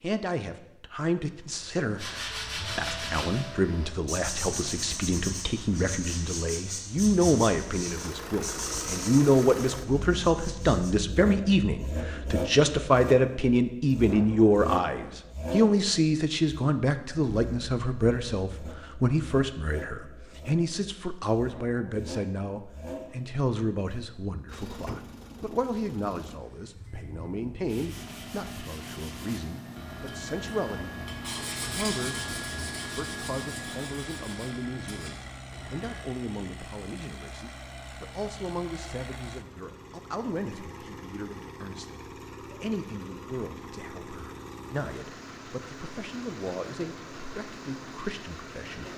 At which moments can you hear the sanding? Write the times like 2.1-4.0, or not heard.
1.9-10.9, 27.6-36.0.